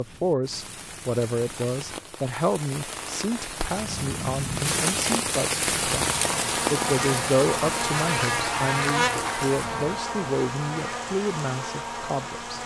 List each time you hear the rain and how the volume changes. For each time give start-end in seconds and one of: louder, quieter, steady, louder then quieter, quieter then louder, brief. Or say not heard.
0.0-12.6 louder then quieter.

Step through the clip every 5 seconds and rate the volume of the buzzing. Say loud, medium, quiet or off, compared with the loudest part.
off, loud, medium.